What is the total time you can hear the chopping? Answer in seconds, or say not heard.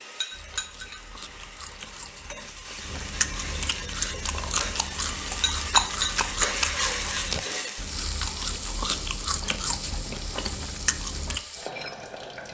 not heard.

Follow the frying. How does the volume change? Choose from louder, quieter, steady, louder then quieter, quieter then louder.
louder then quieter.